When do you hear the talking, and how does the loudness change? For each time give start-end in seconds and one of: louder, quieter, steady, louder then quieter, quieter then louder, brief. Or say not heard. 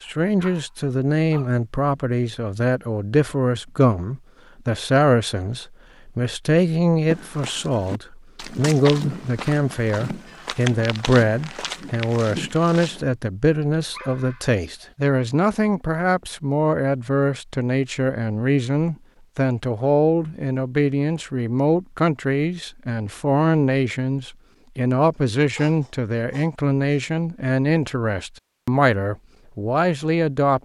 0.0-30.5 steady.